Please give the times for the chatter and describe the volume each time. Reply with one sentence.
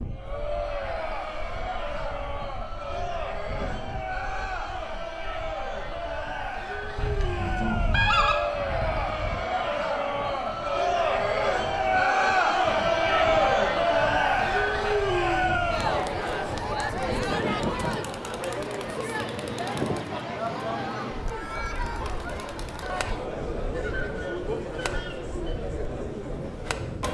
The chatter can be heard from 0.1 to 27.0 s, getting louder then quieter.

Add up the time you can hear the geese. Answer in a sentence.
You can hear the geese for 4 seconds altogether.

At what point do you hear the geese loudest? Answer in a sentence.
The volume of the geese peaks at 8 seconds.